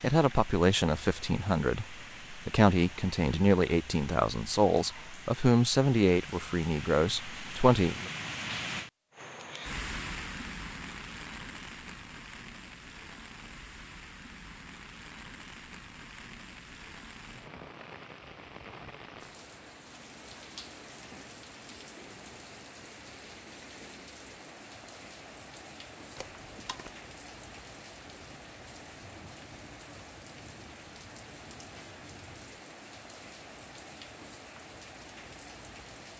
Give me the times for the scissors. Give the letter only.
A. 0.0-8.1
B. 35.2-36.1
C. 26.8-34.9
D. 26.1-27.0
D.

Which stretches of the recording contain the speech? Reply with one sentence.
The speech can be heard from 0.0 to 8.1 s.